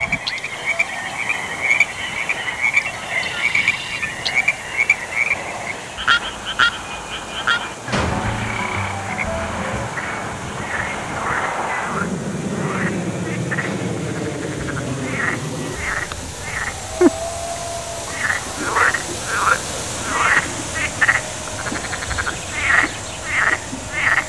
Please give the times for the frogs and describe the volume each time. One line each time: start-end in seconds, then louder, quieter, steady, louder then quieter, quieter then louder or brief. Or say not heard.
0.0-24.2 quieter then louder.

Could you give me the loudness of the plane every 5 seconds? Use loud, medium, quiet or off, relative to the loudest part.
medium, medium, loud, medium, medium.